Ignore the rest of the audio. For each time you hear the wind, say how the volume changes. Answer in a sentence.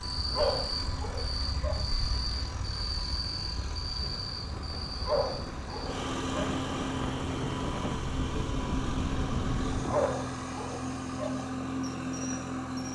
You can hear the wind from 0.0 to 10.2 s, getting louder.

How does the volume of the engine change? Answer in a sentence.
The volume of the engine goes up.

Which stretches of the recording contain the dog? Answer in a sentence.
You can hear the dog from 0.3 to 1.8 s, from 5.0 to 6.5 s and from 9.9 to 11.3 s.